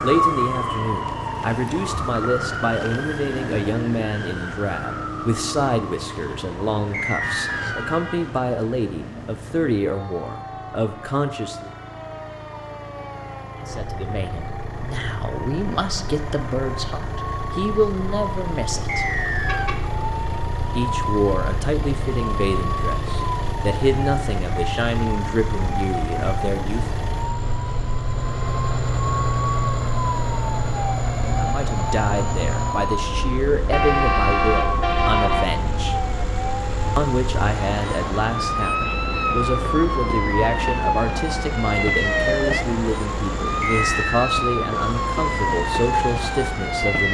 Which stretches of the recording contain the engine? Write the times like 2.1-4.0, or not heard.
0.1-46.9.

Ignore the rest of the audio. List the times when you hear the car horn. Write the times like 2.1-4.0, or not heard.
7.2-8.3, 19.4-19.9, 33.7-35.5.